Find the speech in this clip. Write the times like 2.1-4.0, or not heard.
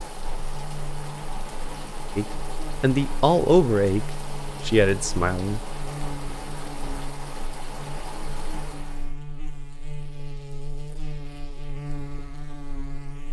2.1-5.8.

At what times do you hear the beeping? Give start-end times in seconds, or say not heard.
not heard.